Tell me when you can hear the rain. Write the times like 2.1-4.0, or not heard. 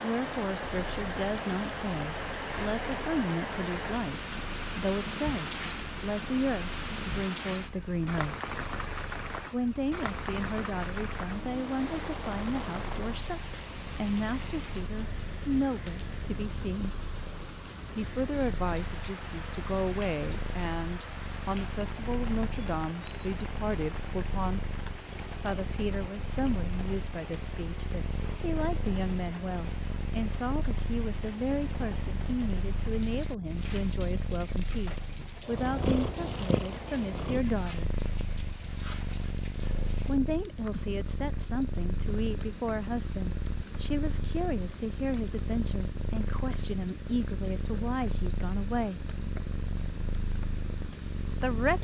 0.0-51.8.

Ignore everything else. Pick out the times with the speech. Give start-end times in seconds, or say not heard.
0.0-8.3, 9.5-16.9, 17.9-24.6, 25.4-37.9, 40.0-49.0, 50.9-51.8.